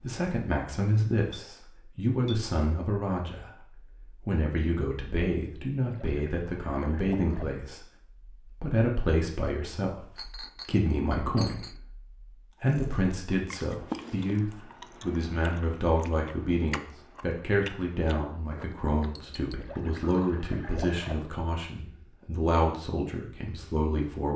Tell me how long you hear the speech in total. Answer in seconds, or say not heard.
22 s.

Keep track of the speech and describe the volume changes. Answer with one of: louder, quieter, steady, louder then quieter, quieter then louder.
steady.